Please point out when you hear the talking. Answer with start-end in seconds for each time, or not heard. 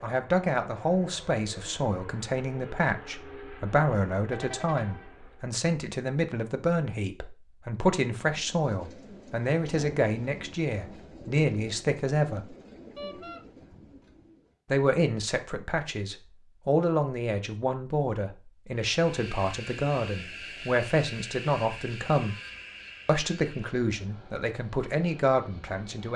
0.0-12.6, 14.7-22.4, 23.1-26.1.